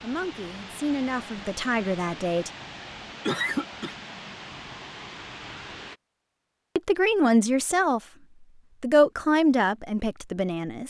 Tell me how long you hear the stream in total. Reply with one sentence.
You can hear the stream for 6 seconds altogether.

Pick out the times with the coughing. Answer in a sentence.
You can hear the coughing from 3.2 to 4.0 s.